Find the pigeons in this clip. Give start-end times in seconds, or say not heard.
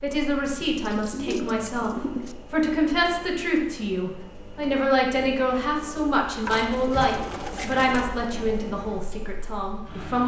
0.5-2.4, 6.5-8.1.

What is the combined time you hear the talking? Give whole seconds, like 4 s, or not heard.
10 s.